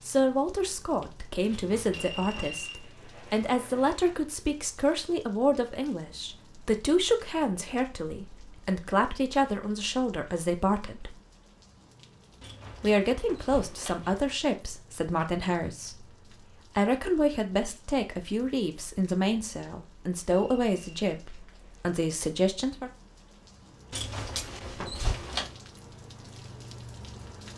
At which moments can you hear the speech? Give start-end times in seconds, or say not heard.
0.0-11.2, 12.8-16.1, 16.8-22.9.